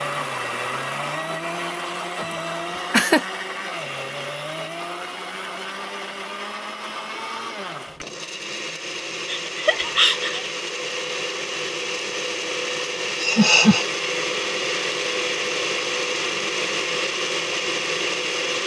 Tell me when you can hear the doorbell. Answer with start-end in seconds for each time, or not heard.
not heard.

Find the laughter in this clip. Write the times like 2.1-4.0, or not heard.
2.2-3.2, 9.4-10.5, 13.2-13.8.